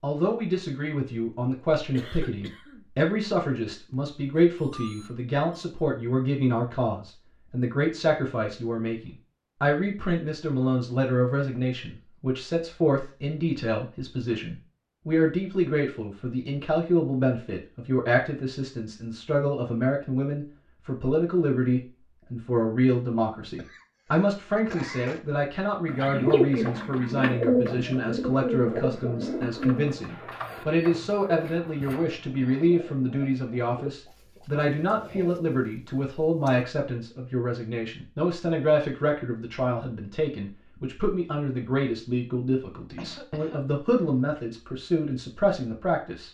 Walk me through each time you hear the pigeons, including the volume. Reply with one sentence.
You can hear the pigeons from 25.9 to 36.6 s, getting quieter.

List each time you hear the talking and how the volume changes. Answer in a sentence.
The talking can be heard from 0.0 to 46.2 s, at a steady volume.